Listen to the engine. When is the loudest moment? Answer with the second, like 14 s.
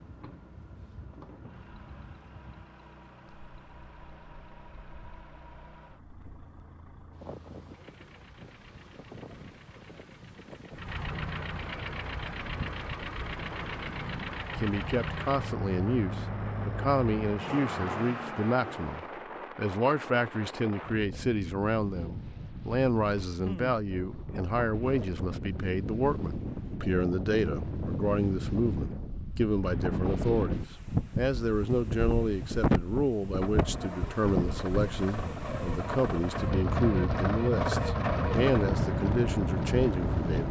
38 s.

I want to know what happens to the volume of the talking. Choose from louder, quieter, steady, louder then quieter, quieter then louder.
steady.